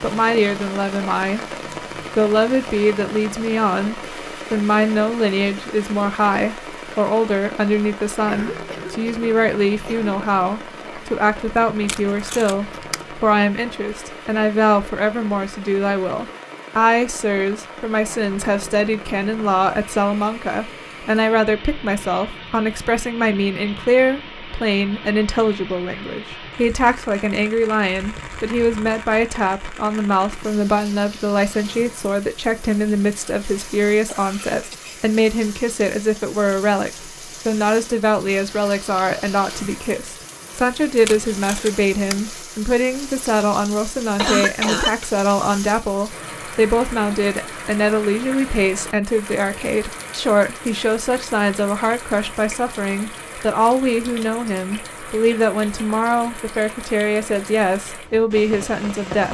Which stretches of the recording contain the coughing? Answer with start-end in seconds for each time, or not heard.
8.2-10.2, 34.0-35.1, 44.1-45.0.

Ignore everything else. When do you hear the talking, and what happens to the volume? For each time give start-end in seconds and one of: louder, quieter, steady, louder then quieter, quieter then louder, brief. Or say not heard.
0.0-1.4 brief
2.1-59.2 steady.